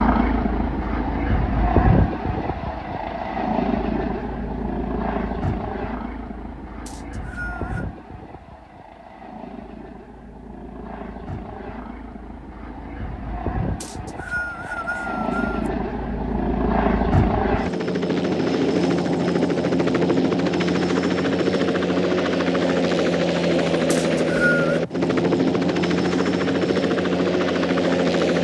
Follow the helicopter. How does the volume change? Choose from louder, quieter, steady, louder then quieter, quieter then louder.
quieter then louder.